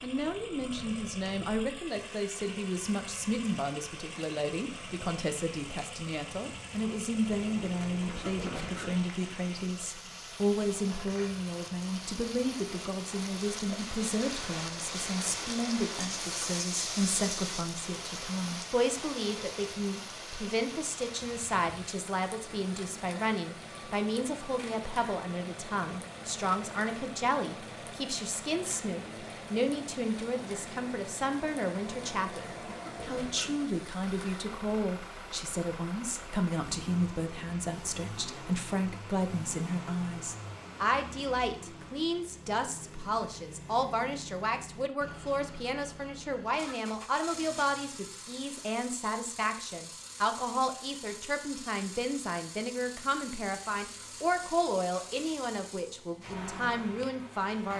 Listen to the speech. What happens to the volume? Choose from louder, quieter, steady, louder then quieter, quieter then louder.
steady.